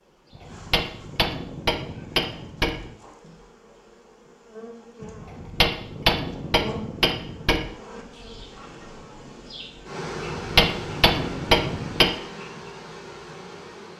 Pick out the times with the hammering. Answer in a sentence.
You can hear the hammering from 0.3 to 3.0 s, from 5.2 to 7.7 s and from 10.2 to 12.1 s.